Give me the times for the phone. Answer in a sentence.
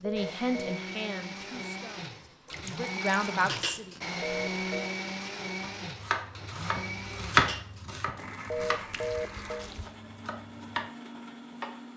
You can hear the phone from 0.0 to 0.8 s, from 4.2 to 4.9 s and from 8.4 to 9.7 s.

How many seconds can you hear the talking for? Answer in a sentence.
You can hear the talking for 4 seconds altogether.